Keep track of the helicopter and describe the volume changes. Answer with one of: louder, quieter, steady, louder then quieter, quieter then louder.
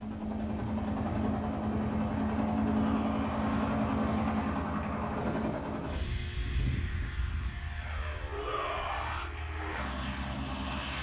quieter.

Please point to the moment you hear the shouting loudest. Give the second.
9 s.